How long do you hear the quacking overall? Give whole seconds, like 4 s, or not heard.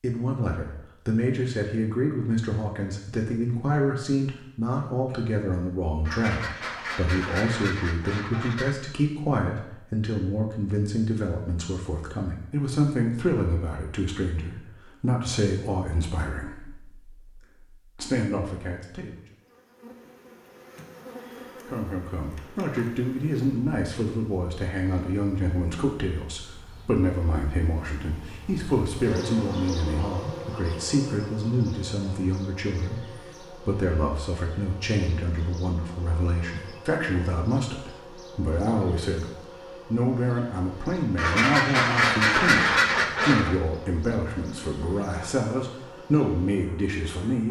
5 s.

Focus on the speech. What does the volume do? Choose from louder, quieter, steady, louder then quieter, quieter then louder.
steady.